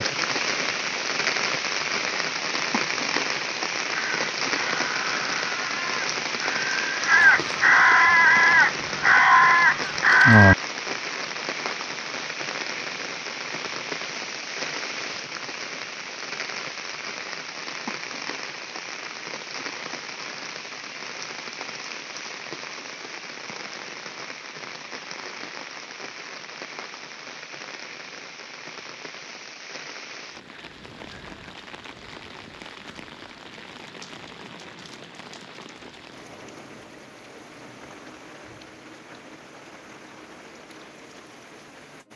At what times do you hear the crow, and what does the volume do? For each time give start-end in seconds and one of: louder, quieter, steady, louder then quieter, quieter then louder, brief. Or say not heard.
3.9-10.6 louder.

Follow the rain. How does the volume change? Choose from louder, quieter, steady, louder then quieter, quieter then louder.
quieter.